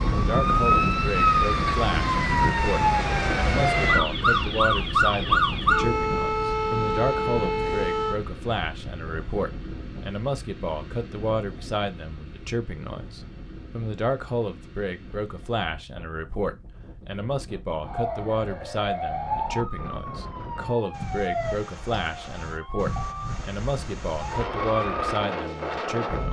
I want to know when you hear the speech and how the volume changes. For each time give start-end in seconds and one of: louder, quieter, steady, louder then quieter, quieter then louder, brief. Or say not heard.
0.1-26.2 steady.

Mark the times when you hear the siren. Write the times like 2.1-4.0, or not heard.
0.0-8.2, 17.8-26.2.